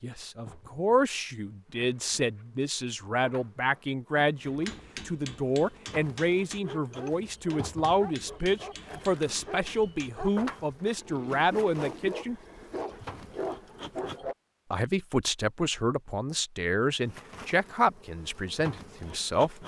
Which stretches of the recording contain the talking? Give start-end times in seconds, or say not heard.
0.0-12.3, 14.7-19.6.